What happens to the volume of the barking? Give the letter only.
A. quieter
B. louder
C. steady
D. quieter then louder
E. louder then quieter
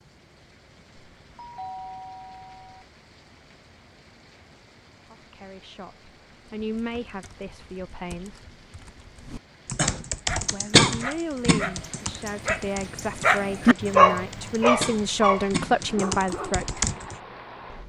E.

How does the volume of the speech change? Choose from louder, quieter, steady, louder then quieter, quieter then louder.
louder.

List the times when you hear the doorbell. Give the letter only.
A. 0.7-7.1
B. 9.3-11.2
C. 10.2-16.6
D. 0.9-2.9
D.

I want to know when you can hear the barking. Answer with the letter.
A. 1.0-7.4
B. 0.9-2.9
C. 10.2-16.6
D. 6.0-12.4
C.